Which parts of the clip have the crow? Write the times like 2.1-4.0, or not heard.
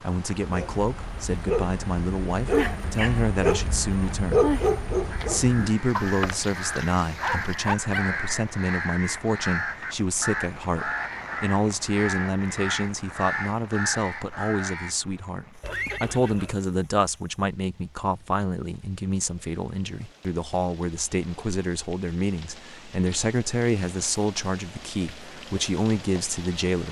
5.1-14.9.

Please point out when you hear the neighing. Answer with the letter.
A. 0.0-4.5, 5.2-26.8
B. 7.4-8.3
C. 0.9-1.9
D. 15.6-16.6
D.